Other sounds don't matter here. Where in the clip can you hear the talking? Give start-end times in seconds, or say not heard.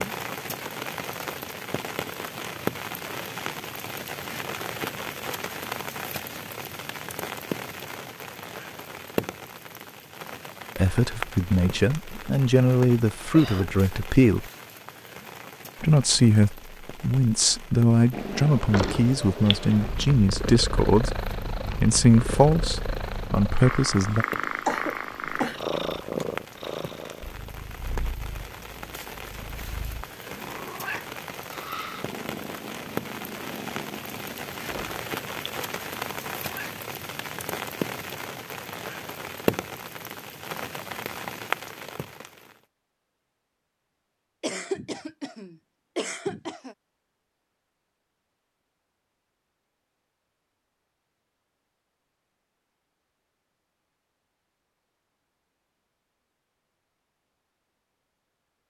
10.8-14.5, 15.8-24.2.